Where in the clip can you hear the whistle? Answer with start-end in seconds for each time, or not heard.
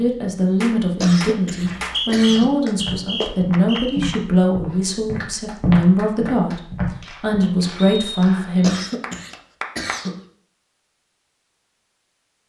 1.8-4.0, 7.8-8.6.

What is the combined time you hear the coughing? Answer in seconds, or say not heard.
3 s.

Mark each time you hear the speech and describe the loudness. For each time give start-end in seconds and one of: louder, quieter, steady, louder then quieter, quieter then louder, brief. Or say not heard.
0.0-8.8 steady.